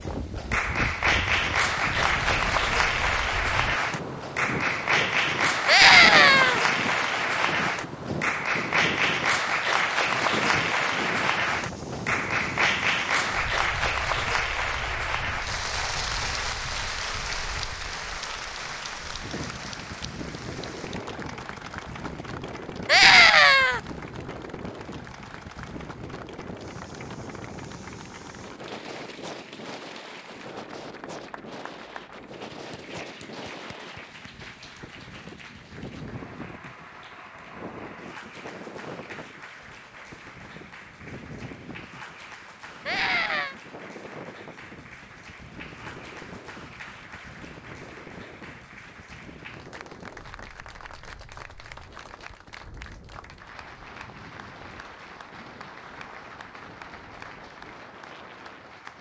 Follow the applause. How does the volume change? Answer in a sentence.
The volume of the applause goes down.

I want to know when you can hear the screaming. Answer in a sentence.
You can hear the screaming from 5.7 to 6.6 s, from 22.9 to 23.8 s and from 42.9 to 43.5 s.